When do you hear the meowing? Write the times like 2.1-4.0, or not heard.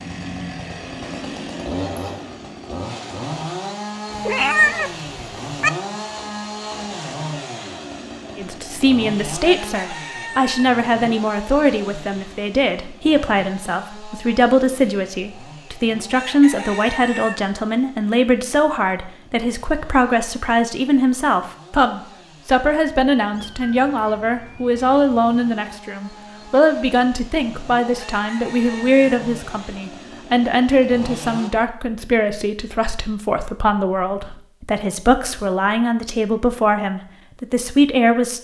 4.1-5.7, 23.3-25.2.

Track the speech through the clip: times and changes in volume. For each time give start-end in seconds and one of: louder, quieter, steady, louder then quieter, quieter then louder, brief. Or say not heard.
8.3-38.3 steady.